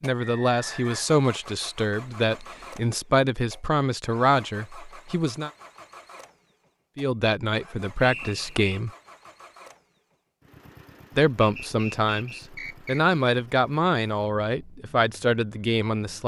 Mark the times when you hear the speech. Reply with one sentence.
The speech can be heard from 0.0 to 5.5 s, from 7.0 to 8.9 s and from 11.2 to 16.2 s.